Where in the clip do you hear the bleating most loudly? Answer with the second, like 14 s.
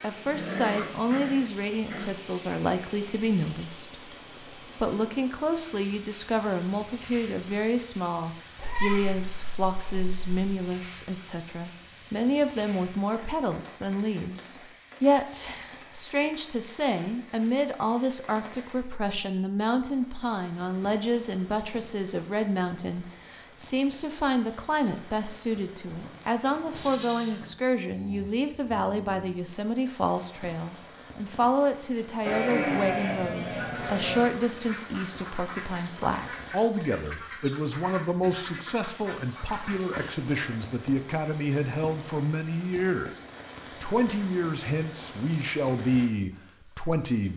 33 s.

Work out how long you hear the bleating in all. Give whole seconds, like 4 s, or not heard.
5 s.